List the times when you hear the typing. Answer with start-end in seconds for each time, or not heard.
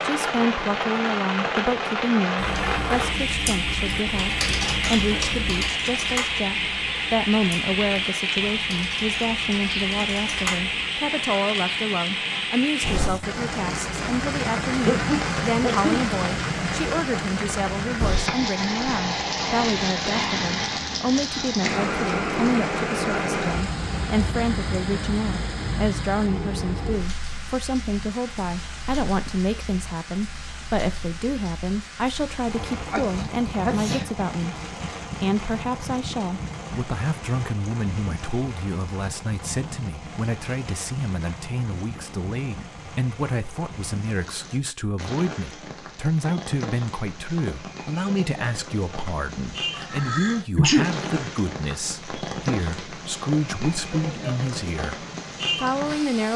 2.4-10.9.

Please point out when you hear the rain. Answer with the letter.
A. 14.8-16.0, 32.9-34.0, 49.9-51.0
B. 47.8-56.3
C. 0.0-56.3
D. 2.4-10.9
C.